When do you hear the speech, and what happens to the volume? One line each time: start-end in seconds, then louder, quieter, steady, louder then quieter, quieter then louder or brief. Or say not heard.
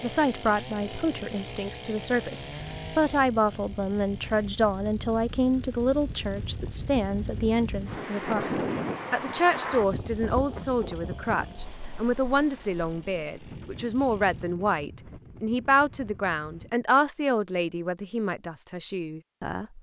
0.0-19.7 steady.